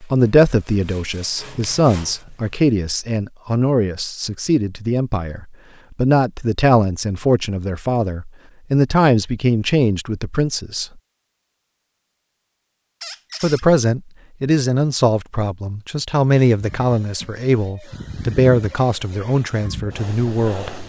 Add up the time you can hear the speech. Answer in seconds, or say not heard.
18 s.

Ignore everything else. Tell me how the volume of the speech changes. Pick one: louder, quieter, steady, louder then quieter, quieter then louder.
steady.